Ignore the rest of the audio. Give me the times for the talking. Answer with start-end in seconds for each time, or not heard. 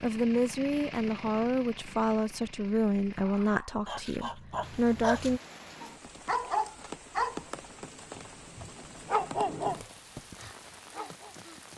0.0-5.4.